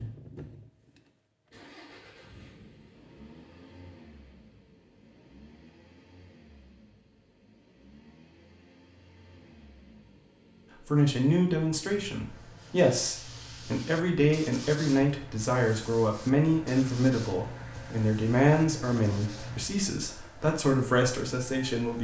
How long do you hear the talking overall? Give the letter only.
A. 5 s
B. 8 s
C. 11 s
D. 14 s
C.